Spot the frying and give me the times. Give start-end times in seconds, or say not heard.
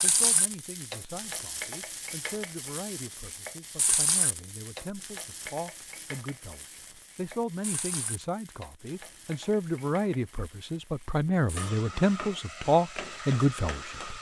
0.0-14.1.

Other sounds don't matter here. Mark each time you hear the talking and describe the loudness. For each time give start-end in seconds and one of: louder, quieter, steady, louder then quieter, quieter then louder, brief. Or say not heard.
0.0-14.1 louder.